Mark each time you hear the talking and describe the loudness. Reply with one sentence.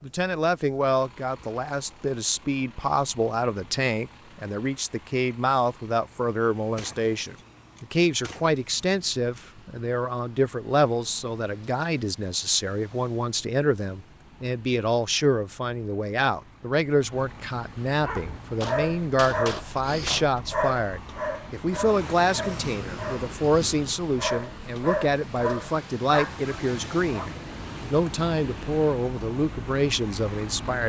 The talking can be heard from 0.0 to 30.8 s, at a steady volume.